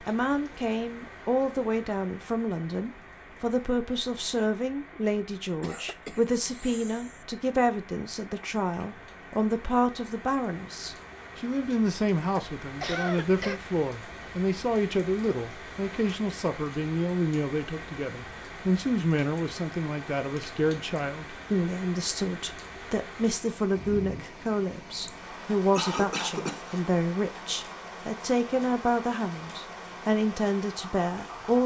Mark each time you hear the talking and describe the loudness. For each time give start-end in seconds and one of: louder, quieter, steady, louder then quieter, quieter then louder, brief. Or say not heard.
0.0-31.6 steady.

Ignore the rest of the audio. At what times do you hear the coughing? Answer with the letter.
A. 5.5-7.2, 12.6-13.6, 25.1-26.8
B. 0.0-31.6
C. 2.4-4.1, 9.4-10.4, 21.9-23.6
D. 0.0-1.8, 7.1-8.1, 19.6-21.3
A.